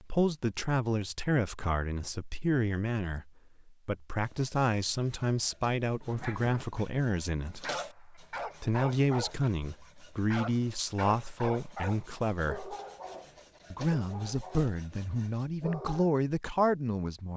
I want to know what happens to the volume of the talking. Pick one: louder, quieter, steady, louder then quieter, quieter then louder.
steady.